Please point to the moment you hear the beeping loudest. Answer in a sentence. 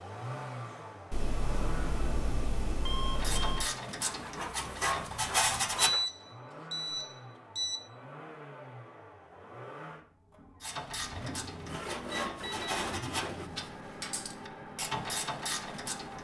The loudest moment of the beeping is at 6 seconds.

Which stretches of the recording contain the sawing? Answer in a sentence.
You can hear the sawing from 4.0 to 6.1 s and from 11.2 to 13.5 s.